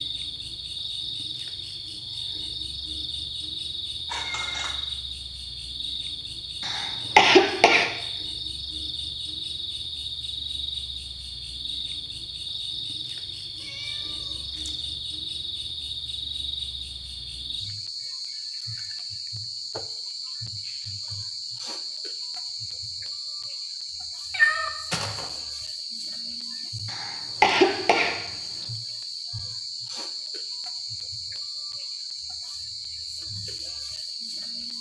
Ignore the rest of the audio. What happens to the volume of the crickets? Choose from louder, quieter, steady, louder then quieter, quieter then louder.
steady.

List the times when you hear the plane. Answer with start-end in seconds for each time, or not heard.
not heard.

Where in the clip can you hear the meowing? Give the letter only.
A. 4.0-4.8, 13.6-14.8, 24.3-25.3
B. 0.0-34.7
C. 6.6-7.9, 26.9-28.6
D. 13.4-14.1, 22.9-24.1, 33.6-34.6
A.